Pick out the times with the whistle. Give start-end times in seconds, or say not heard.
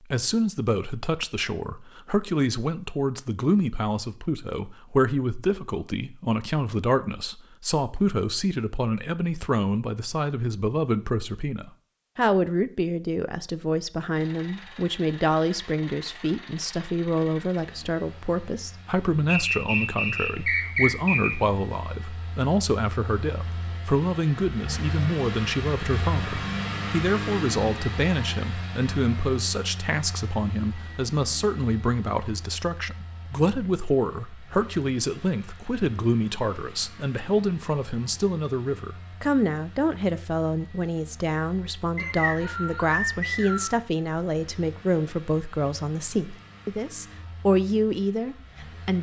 19.2-21.4, 42.0-43.8.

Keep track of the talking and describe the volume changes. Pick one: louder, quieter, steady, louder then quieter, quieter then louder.
steady.